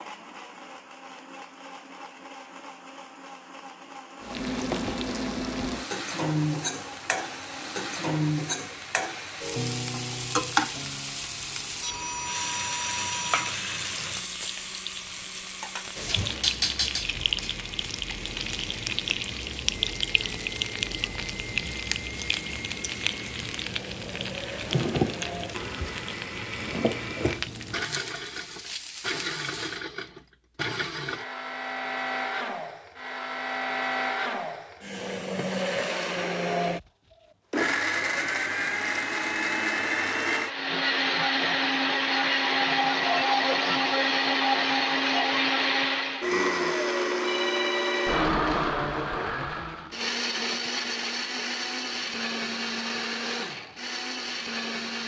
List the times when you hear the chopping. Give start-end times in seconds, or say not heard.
not heard.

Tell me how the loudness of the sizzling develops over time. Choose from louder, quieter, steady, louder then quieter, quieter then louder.
steady.